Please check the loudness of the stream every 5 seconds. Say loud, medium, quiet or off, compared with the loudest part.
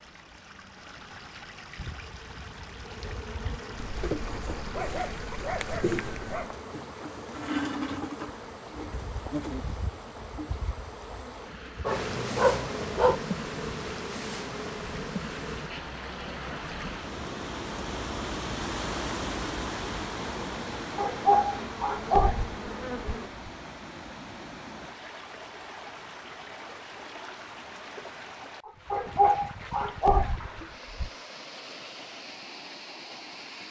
medium, medium, medium, loud, loud, medium, medium.